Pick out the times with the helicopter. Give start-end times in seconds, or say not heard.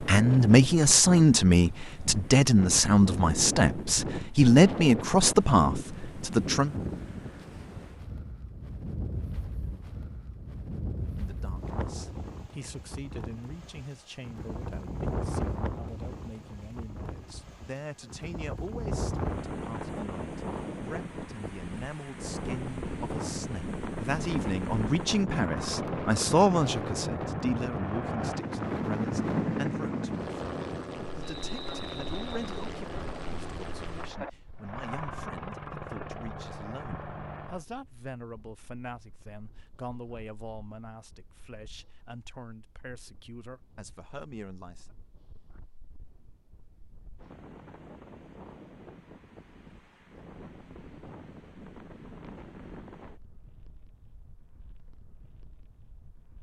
25.2-37.6.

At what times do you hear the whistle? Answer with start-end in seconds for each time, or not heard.
31.2-32.7.